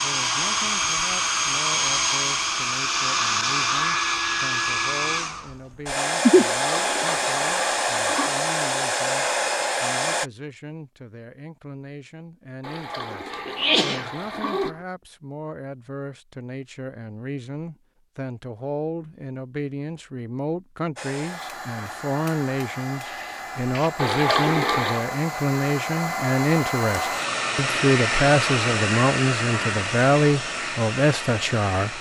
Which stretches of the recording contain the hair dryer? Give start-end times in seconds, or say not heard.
0.0-10.3, 20.9-31.9.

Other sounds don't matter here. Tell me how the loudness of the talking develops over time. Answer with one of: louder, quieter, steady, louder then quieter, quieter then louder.
louder.